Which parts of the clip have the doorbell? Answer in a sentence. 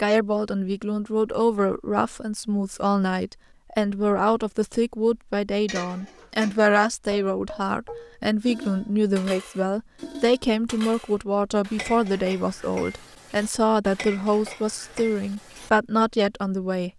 You can't hear the doorbell here.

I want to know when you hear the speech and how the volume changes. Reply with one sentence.
You can hear the speech from 0.0 to 16.9 s, at a steady volume.